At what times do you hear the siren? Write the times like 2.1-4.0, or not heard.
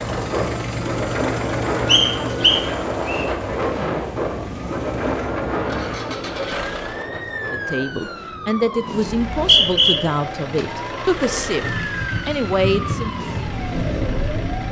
0.0-14.6.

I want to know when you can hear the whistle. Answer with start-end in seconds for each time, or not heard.
1.9-3.2, 9.1-9.9.